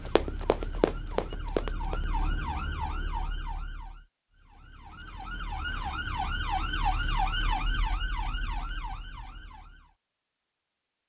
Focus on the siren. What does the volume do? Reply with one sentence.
The volume of the siren goes up, then down.